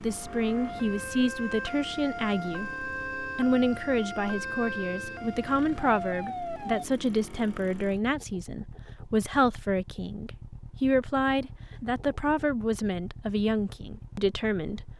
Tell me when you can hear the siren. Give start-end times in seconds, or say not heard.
0.0-6.8.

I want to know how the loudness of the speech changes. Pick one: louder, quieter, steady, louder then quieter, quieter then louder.
steady.